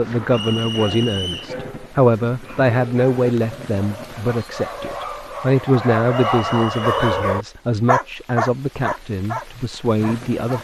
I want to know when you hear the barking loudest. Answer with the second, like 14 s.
7 s.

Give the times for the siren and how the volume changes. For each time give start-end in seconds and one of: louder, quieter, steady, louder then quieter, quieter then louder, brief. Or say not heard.
not heard.